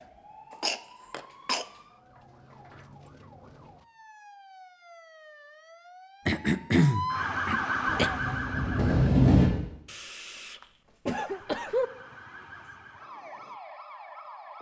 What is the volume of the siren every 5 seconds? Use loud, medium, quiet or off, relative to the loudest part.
quiet, loud, quiet.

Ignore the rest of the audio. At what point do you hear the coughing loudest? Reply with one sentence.
The loudest moment of the coughing is at 7 seconds.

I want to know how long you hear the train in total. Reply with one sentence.
The train can be heard for 2 seconds in total.